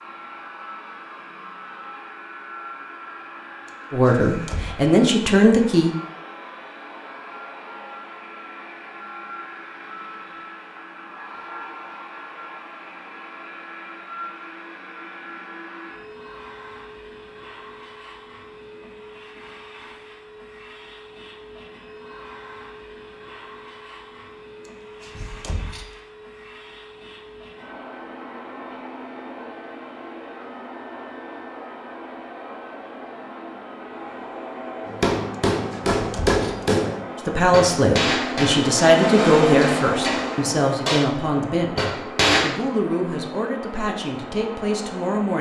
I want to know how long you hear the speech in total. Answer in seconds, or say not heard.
10 s.